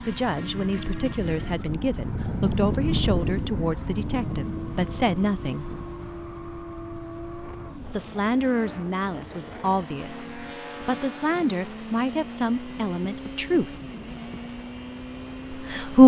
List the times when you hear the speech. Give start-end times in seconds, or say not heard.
0.1-5.7, 7.9-13.8, 15.5-16.0.